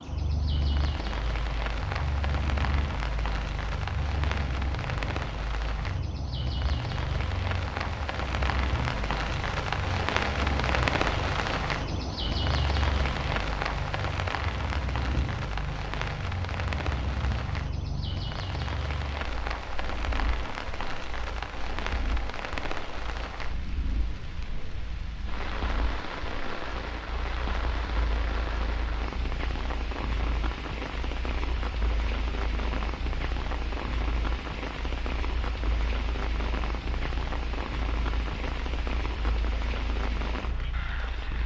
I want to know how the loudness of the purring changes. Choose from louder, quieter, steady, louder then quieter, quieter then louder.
quieter.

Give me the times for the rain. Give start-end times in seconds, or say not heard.
0.0-41.4.